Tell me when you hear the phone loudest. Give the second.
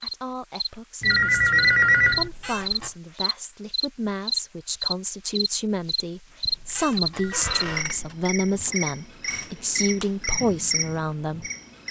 2 s.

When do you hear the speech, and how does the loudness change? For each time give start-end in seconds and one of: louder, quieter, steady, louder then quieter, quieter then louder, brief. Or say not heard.
0.0-11.5 louder.